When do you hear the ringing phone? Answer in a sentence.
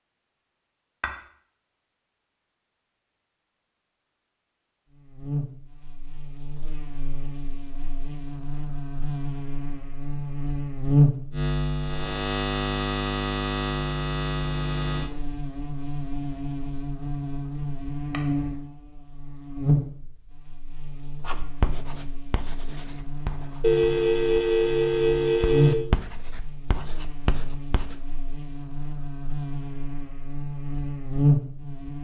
The ringing phone can be heard from 23.6 to 25.8 s.